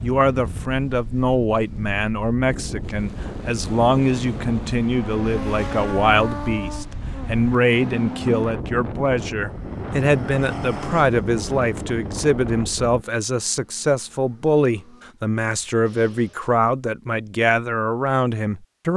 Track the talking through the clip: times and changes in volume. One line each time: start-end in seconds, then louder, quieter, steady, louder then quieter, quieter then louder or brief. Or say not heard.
0.0-18.9 steady.